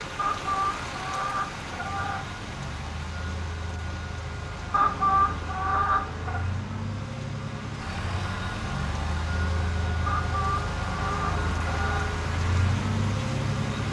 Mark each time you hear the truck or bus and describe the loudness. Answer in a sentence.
You can hear the truck or bus from 0.0 to 13.8 s, getting louder.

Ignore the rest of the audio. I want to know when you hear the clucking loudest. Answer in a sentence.
The volume of the clucking peaks at 5 seconds.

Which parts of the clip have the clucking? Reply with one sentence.
You can hear the clucking from 0.1 to 2.2 s, from 4.7 to 6.5 s and from 10.1 to 12.1 s.